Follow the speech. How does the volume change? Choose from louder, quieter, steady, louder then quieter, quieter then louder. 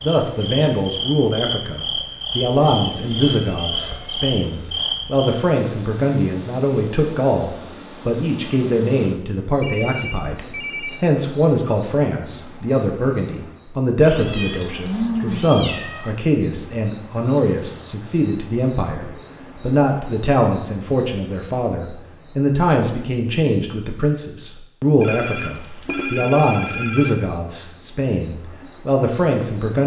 steady.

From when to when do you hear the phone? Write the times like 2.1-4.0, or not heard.
9.6-11.0, 25.0-27.1.